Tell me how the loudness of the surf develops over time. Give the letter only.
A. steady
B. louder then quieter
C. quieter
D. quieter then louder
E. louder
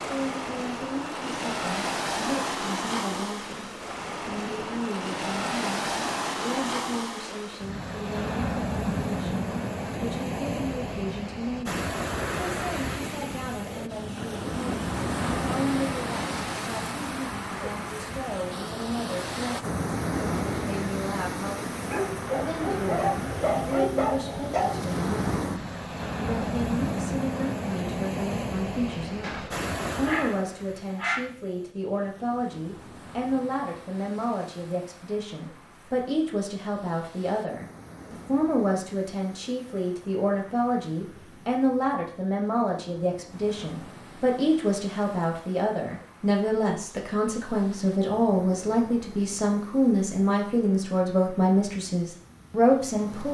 C.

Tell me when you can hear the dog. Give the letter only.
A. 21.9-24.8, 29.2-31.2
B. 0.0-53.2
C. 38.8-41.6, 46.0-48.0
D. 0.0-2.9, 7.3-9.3
A.